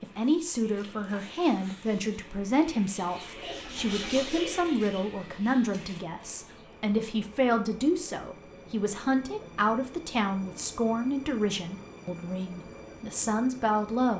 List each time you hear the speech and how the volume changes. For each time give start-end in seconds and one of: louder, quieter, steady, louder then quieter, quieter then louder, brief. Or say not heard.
0.0-14.1 steady.